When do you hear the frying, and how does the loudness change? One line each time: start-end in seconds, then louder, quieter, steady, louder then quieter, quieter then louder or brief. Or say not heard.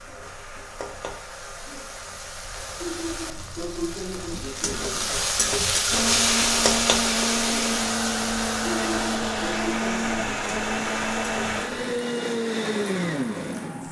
0.0-13.8 louder then quieter.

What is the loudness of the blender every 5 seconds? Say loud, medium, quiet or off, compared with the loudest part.
off, loud, loud.